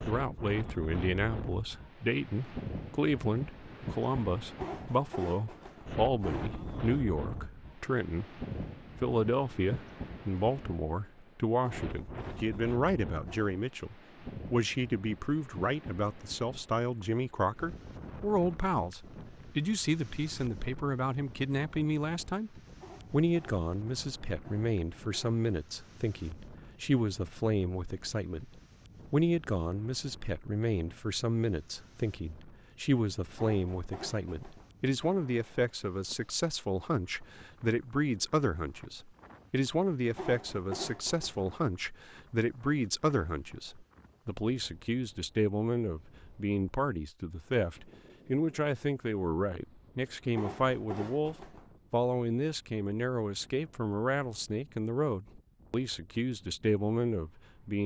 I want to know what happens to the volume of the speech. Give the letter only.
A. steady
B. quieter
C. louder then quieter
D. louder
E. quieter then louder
A.